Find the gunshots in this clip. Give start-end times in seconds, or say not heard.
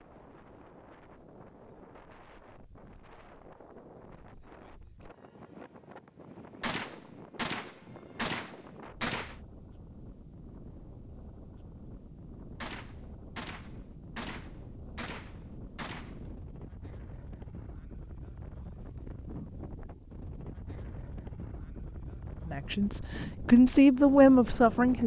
6.6-9.3, 12.6-16.2.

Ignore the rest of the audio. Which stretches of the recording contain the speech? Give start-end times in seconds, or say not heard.
22.4-25.0.